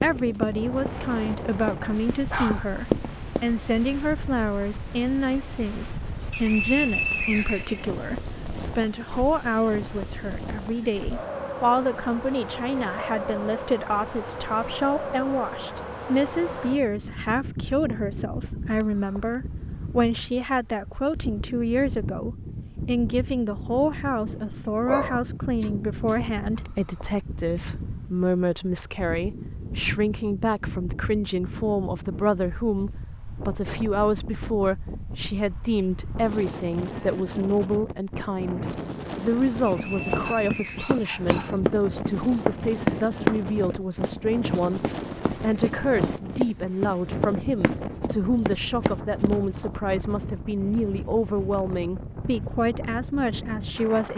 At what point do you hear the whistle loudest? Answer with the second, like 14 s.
7 s.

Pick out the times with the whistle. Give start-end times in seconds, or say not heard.
6.3-8.3, 39.6-41.6.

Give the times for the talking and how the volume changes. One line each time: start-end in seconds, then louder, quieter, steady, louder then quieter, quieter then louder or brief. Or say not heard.
0.0-54.1 steady.